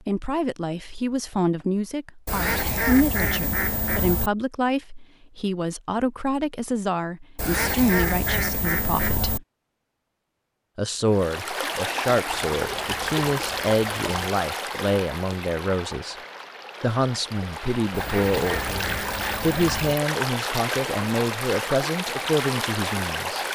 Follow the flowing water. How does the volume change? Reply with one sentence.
The loudness of the flowing water goes down, then up.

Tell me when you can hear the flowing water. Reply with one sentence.
You can hear the flowing water from 11.1 to 23.5 s.